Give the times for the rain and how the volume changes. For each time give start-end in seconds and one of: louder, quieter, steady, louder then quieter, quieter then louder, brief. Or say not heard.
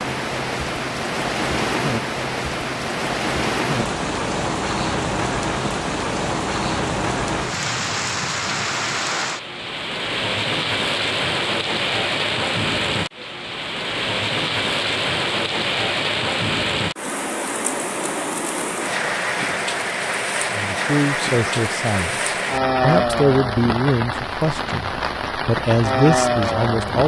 0.0-27.0 steady.